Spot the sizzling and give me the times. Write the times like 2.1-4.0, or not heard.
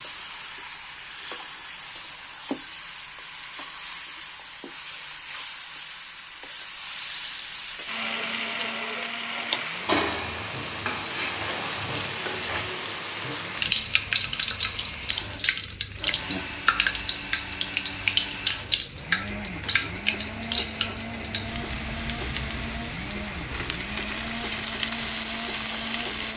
0.0-26.3.